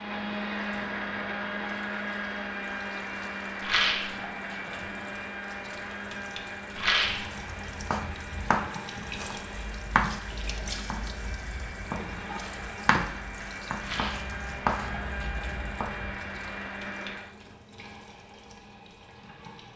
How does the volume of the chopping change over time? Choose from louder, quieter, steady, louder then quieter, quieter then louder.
quieter.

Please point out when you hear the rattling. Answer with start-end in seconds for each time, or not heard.
3.6-4.1, 6.8-7.2, 13.8-14.3.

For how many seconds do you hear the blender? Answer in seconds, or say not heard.
17 s.